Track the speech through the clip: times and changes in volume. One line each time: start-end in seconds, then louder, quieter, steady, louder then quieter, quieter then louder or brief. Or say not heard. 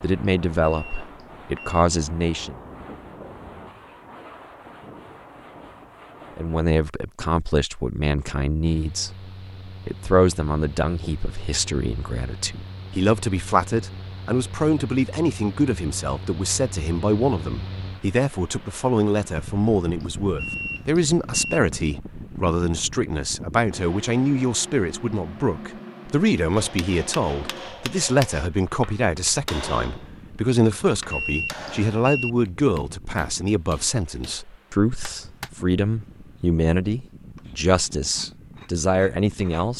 0.0-2.5 brief
6.3-39.7 steady.